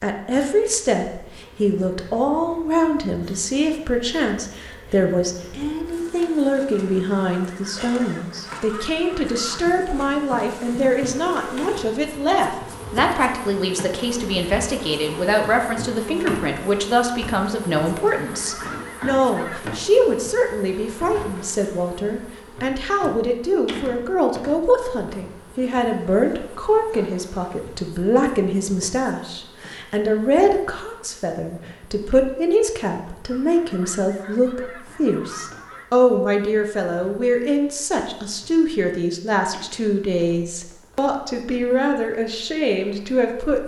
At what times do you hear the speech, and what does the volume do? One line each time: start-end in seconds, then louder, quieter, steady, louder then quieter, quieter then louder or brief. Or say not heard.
0.0-43.6 steady.